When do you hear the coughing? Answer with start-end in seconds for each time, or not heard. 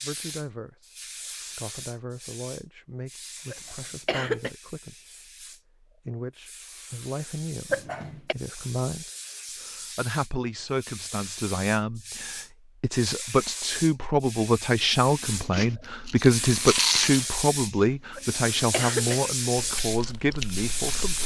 3.5-4.5, 7.7-8.3, 18.1-19.7.